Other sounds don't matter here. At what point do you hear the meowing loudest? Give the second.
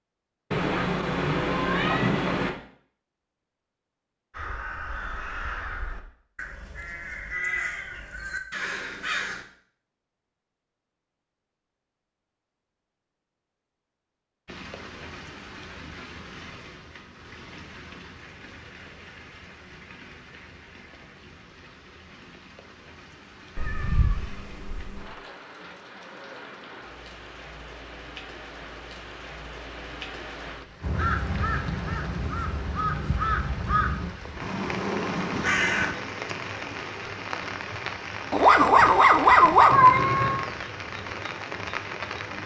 40 s.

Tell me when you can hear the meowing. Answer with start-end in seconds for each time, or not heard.
0.5-2.5, 23.6-25.1, 39.7-40.5.